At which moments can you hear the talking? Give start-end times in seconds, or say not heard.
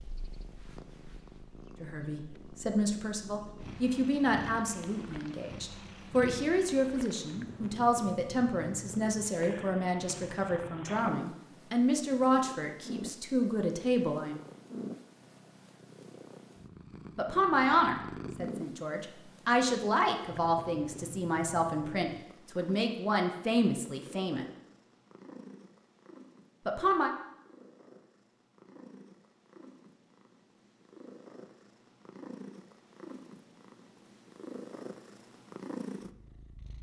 1.8-14.3, 17.1-24.4, 26.6-27.1.